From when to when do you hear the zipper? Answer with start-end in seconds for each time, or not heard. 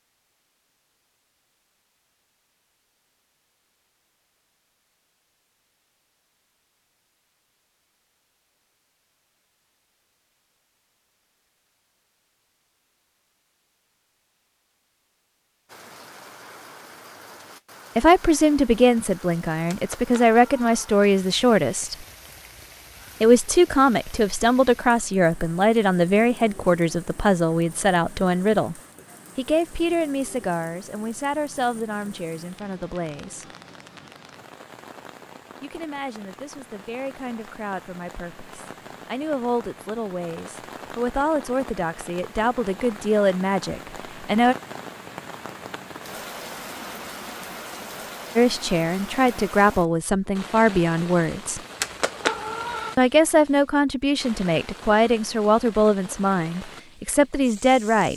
not heard.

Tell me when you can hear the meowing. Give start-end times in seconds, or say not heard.
19.7-20.8, 51.8-53.0.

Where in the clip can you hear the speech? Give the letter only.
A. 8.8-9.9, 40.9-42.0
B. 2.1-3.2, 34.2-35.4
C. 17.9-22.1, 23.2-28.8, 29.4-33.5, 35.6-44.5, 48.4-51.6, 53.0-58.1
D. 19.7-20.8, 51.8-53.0
C.